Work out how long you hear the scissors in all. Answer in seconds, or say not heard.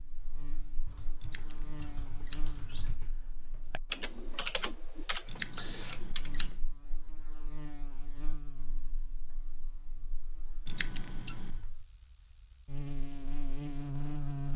4 s.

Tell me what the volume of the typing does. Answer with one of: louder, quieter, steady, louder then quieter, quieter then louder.
louder.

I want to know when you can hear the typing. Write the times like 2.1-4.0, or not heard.
0.8-6.3.